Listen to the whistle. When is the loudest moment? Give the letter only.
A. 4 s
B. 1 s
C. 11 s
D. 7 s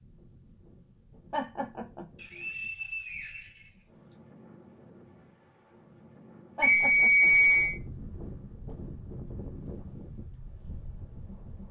D.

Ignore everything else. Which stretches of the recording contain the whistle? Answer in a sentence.
The whistle can be heard from 2.1 to 4.2 s and from 6.6 to 7.8 s.